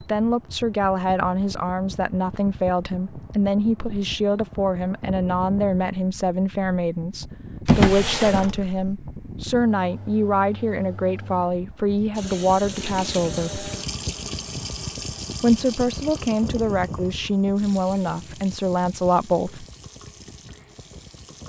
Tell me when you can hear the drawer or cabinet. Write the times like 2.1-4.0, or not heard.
7.7-8.8.